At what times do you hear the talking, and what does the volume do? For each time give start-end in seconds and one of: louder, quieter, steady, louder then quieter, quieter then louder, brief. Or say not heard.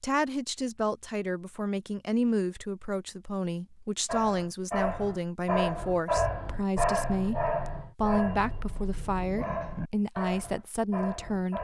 0.0-11.5 steady.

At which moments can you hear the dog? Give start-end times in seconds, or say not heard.
4.0-11.5.